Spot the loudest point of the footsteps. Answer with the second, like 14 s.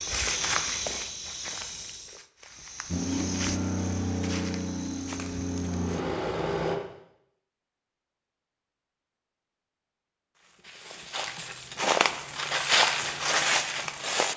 13 s.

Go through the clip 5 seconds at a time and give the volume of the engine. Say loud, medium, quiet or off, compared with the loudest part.
loud, loud, off.